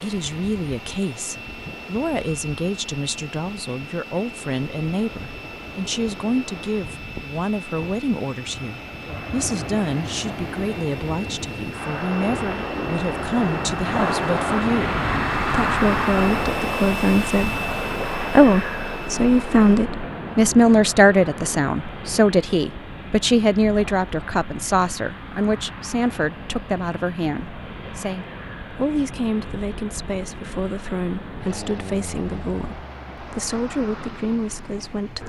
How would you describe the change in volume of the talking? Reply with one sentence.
The loudness of the talking goes up, then down.